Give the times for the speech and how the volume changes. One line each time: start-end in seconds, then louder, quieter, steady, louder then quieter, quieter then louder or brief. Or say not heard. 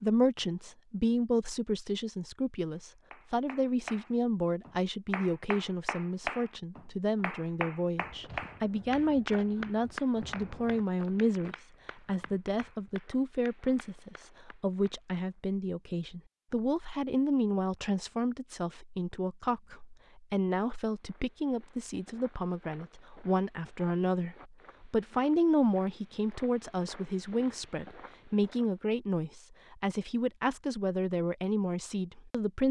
0.0-32.6 steady.